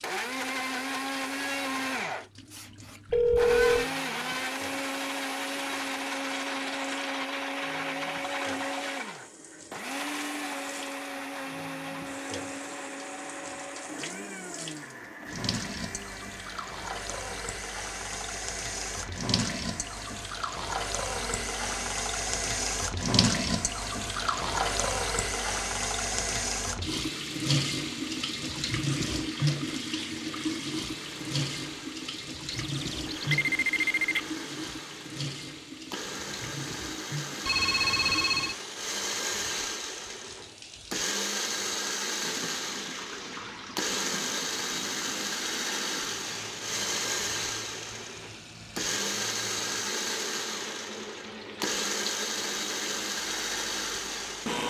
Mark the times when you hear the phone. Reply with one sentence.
The phone can be heard from 3.1 to 3.9 s, from 32.5 to 34.2 s and from 37.5 to 38.5 s.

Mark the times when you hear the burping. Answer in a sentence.
The burping can't be heard in this clip.